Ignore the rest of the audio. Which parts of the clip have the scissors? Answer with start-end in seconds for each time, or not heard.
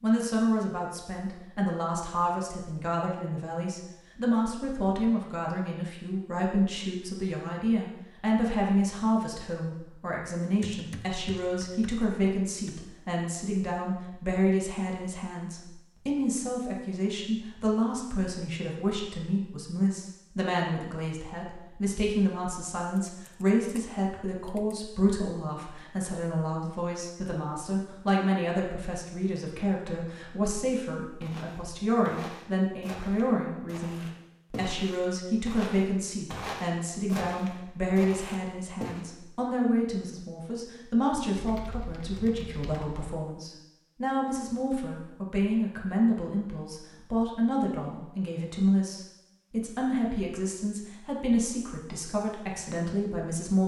not heard.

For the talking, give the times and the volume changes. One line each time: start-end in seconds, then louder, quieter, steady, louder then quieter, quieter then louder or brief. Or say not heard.
0.0-53.6 steady.